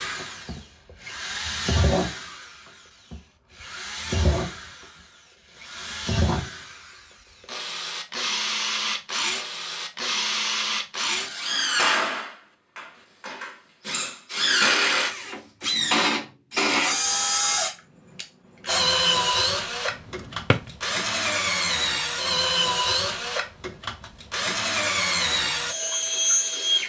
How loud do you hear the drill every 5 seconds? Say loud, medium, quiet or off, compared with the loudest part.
medium, medium, loud, loud, loud, loud.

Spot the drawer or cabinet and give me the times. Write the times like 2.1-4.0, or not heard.
19.9-20.7.